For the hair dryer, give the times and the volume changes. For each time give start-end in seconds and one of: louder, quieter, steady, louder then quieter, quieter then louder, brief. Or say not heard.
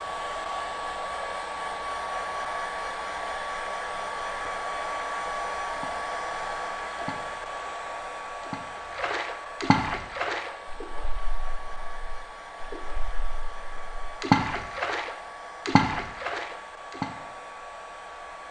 0.0-18.4 quieter.